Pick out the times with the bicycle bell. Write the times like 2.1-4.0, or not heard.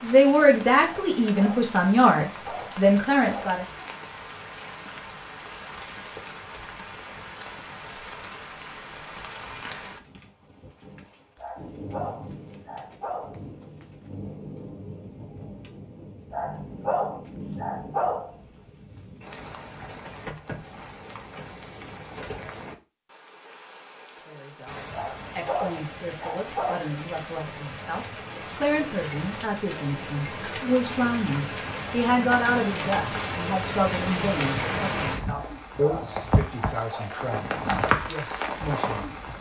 not heard.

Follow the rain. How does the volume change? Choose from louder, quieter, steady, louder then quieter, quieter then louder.
louder.